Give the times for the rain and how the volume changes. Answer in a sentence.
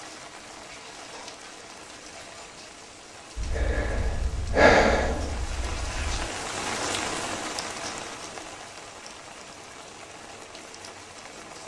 You can hear the rain from 0.0 to 11.6 s, getting louder then quieter.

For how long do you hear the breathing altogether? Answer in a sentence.
The breathing can be heard for 3 seconds in total.